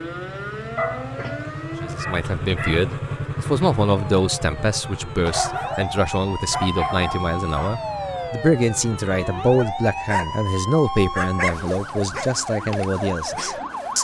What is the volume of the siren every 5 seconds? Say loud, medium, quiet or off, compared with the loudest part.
medium, loud, loud.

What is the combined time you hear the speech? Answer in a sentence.
The speech can be heard for 12 seconds in total.